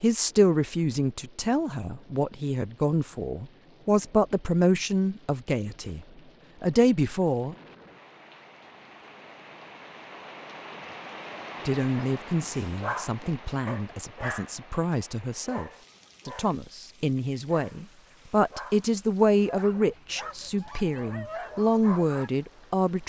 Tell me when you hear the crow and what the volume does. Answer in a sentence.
You can't hear the crow here.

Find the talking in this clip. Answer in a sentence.
The talking can be heard from 0.0 to 7.5 s and from 11.7 to 23.0 s.